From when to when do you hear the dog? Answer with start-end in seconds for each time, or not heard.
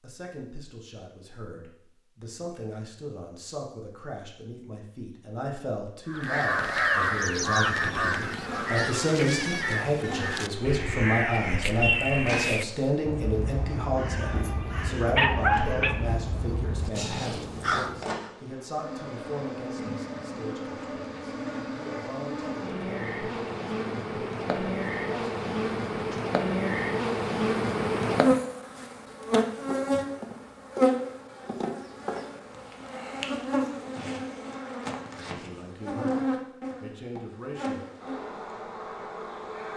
14.2-15.9.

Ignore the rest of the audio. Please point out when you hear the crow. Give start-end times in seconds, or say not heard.
6.0-18.1.